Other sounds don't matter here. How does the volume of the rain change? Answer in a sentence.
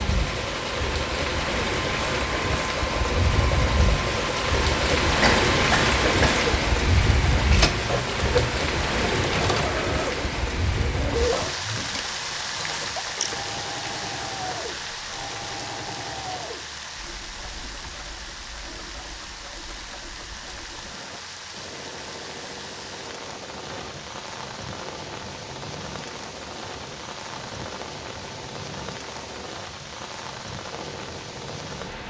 The loudness of the rain goes down.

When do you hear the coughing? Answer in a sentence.
You can hear the coughing from 5.2 to 6.3 s.